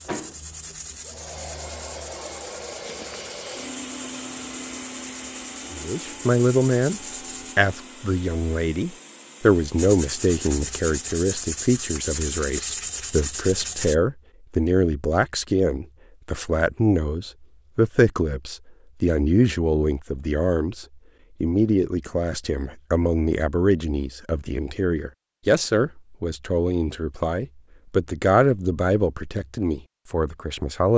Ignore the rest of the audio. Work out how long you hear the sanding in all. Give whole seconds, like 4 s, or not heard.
12 s.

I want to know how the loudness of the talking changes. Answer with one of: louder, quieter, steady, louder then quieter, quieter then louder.
steady.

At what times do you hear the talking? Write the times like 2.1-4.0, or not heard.
5.7-30.9.